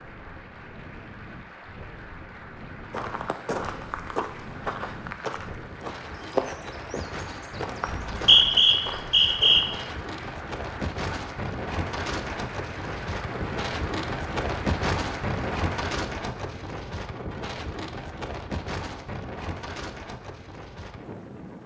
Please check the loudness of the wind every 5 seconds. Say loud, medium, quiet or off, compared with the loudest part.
quiet, medium, loud, loud, medium.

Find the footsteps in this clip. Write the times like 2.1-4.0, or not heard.
2.9-9.8.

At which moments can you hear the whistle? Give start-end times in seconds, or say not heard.
7.8-9.6.